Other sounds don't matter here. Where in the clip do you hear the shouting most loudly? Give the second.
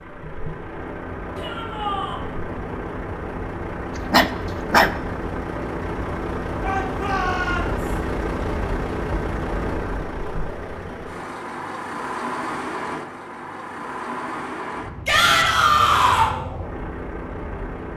16 s.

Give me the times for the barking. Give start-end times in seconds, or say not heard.
4.0-4.9.